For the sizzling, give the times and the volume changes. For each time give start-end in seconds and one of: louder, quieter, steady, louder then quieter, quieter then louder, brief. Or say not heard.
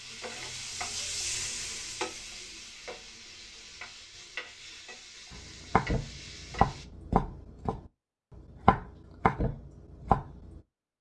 0.0-6.8 quieter.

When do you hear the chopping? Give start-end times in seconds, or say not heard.
5.3-10.6.